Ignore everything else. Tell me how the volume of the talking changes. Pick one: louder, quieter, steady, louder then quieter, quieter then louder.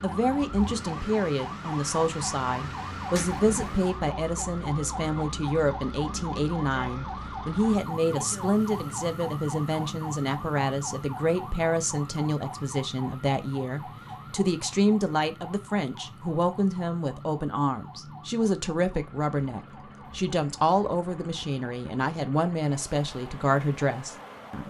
steady.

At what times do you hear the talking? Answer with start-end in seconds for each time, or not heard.
0.0-24.6.